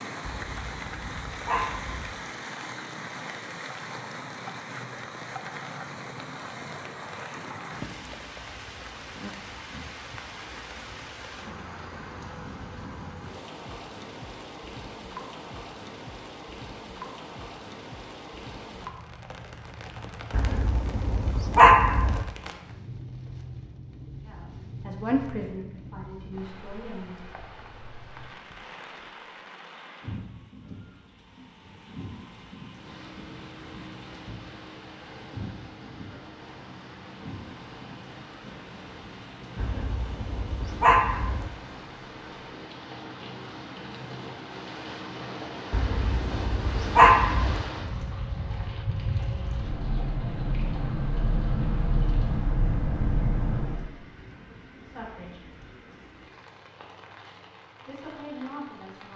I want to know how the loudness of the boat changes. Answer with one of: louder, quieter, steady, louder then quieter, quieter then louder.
louder.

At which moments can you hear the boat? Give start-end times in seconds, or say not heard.
32.6-53.9.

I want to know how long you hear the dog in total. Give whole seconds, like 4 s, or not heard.
8 s.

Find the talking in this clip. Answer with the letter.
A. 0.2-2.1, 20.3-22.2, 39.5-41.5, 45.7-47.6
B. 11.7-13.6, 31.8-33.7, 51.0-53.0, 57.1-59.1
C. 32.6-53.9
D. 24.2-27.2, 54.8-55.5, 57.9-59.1
D.